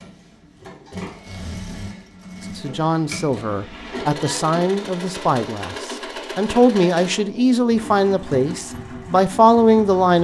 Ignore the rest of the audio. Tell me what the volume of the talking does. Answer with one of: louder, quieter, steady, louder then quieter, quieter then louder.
louder.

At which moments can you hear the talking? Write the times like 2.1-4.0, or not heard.
2.5-10.1.